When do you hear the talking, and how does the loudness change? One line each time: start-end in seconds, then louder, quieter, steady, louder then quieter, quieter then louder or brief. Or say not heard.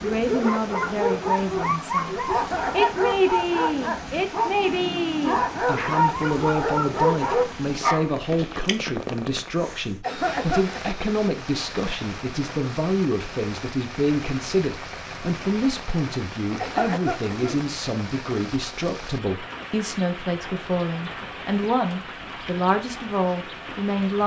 0.0-24.2 steady.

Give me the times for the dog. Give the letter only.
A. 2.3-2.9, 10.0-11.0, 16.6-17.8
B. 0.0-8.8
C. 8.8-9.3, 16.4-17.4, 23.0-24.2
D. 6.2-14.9
B.